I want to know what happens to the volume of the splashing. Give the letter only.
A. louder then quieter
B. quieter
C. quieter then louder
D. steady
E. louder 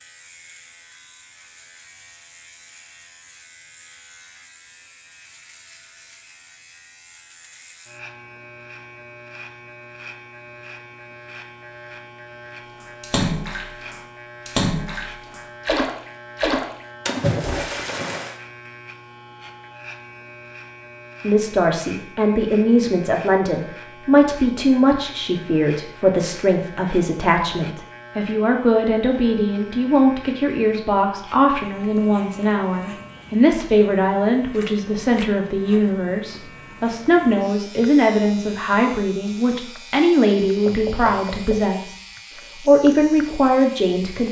D.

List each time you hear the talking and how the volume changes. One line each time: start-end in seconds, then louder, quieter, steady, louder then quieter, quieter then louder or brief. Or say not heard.
21.2-44.2 steady.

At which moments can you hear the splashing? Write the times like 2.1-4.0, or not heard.
12.8-18.4.